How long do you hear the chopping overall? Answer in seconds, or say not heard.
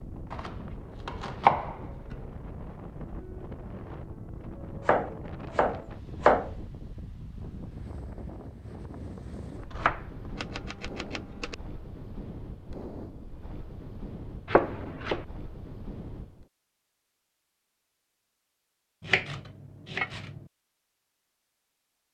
7 s.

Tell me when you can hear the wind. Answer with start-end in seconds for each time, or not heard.
0.0-16.5.